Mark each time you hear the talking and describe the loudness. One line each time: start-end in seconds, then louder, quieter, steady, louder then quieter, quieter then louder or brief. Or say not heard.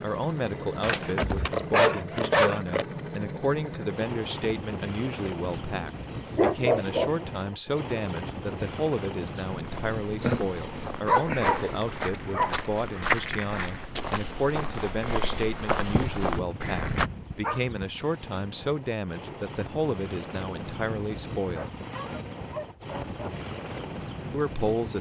0.0-21.6 steady
24.3-24.9 brief.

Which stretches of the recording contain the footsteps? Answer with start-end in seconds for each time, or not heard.
9.5-17.1.